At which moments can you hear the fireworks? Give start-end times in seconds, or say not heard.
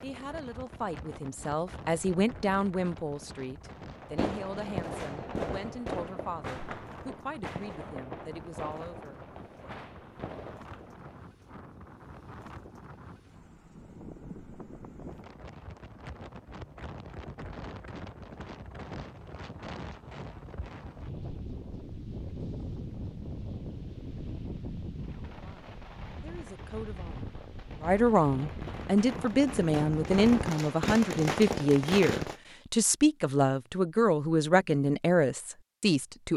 3.9-11.3, 24.9-32.4.